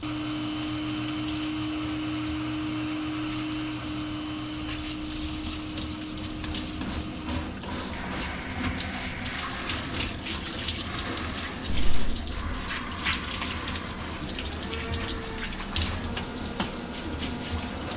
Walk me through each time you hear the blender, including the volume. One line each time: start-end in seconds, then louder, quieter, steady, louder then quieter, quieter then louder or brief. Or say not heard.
0.0-17.9 quieter.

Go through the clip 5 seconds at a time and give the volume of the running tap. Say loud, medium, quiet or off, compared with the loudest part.
medium, loud, loud, loud.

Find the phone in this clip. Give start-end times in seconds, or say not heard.
11.7-12.2.